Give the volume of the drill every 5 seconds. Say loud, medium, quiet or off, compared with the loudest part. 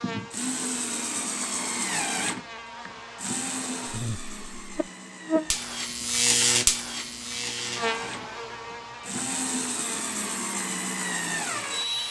loud, medium, loud.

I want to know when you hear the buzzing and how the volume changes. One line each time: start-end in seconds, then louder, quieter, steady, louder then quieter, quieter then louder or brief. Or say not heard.
0.0-12.0 louder then quieter.